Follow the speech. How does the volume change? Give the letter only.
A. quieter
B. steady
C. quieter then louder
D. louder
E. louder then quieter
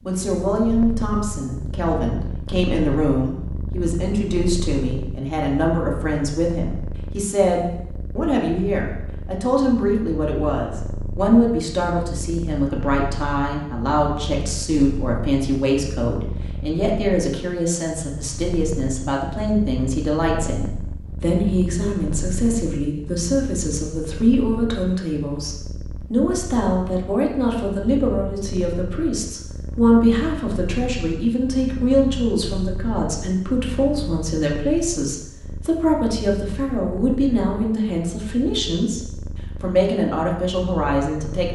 B.